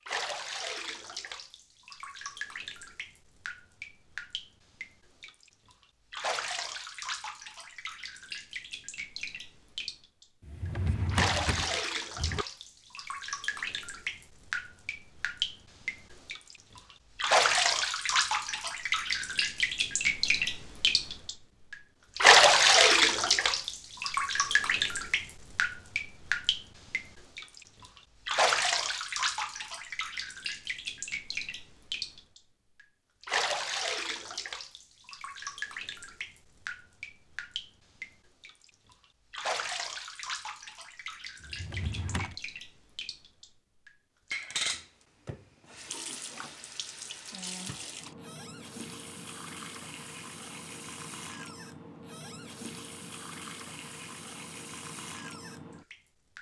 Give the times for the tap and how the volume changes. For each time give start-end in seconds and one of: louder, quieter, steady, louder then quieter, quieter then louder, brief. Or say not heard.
0.1-56.3 louder then quieter.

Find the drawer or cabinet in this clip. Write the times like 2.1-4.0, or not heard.
10.4-12.4, 41.4-42.4.